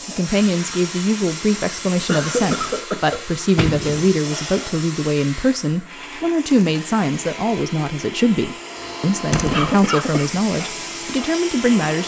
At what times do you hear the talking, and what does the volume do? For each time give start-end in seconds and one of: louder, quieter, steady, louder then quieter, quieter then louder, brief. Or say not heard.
0.1-12.0 steady.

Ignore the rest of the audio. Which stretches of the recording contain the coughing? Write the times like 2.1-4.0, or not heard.
2.0-3.4, 9.5-10.4.